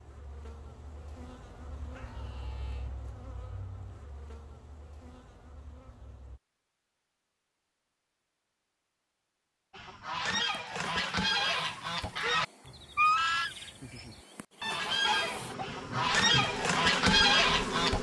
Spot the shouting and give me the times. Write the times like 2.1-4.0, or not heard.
1.9-2.9.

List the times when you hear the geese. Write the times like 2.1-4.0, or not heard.
9.7-17.9.